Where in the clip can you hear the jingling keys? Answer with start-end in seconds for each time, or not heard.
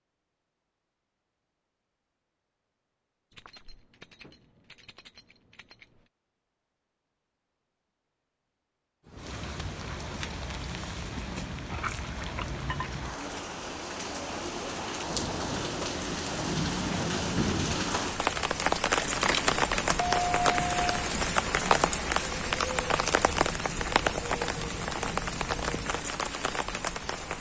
3.3-6.1, 11.7-13.0, 18.9-21.1.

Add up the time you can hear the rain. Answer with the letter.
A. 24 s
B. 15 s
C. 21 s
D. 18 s
D.